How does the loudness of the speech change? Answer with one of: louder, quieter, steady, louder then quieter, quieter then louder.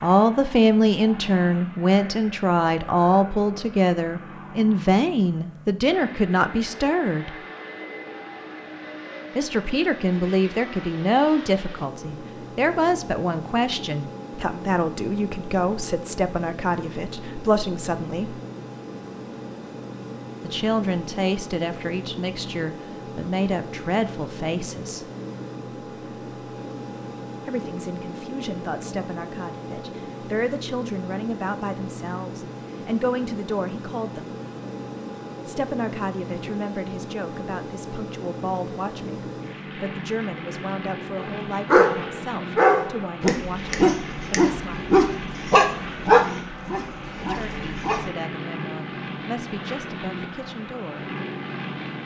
quieter.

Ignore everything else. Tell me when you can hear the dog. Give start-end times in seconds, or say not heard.
41.2-48.1.